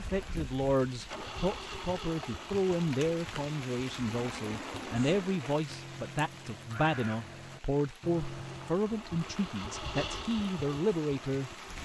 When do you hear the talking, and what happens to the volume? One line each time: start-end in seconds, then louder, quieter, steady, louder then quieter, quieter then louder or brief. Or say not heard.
0.0-11.8 steady.